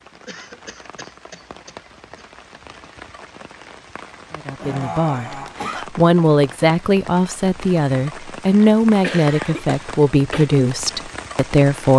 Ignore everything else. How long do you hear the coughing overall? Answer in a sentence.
You can hear the coughing for 5 seconds altogether.